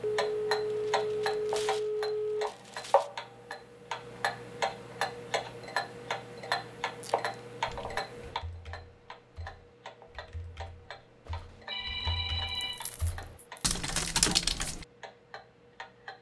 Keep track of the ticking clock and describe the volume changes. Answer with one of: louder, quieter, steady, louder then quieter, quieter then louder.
quieter.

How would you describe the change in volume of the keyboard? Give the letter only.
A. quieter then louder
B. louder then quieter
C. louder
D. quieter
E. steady
C.